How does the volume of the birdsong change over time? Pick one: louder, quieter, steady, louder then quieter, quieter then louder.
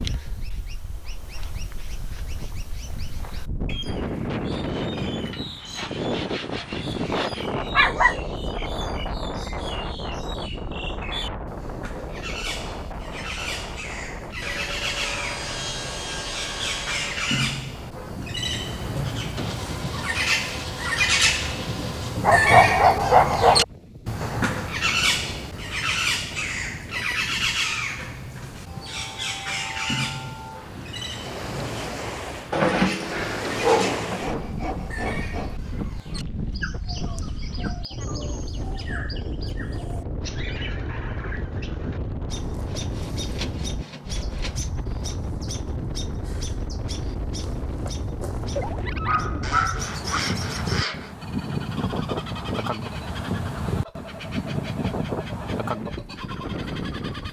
louder then quieter.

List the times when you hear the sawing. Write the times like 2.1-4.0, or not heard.
5.3-7.5, 14.4-17.4, 19.4-22.2, 33.8-35.6, 41.9-44.7, 49.4-51.1.